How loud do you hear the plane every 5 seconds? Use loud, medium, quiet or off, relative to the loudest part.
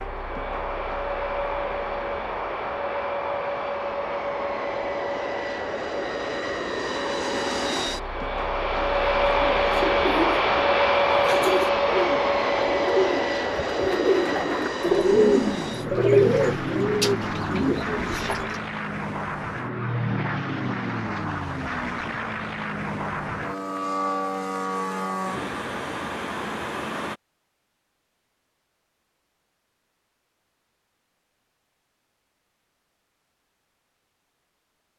medium, loud, loud, medium, medium, medium, off.